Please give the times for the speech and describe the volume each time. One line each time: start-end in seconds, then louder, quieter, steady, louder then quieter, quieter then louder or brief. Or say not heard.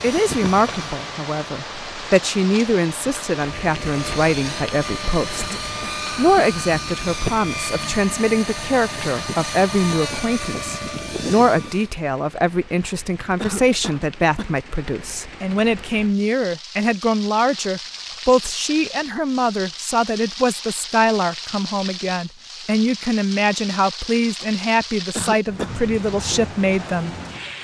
0.0-27.1 steady.